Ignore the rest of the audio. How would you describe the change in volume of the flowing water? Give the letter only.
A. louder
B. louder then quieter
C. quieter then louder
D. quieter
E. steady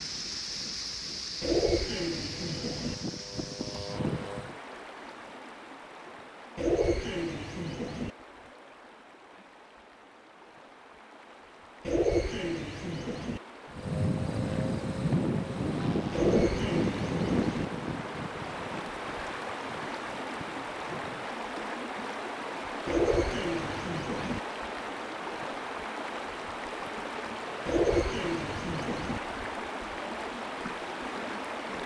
C.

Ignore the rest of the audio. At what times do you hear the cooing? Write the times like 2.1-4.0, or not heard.
1.4-3.0, 6.5-8.1, 11.8-13.4, 16.1-17.6, 22.9-24.4, 27.6-29.2.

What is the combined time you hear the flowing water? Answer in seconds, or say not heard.
32 s.